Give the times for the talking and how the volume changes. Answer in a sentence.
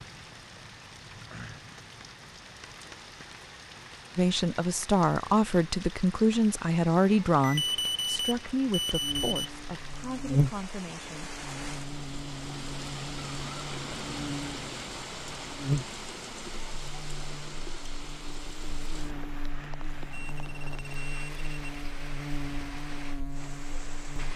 You can hear the talking from 4.2 to 11.3 s, getting quieter.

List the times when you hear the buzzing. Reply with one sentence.
You can hear the buzzing from 9.0 to 24.3 s.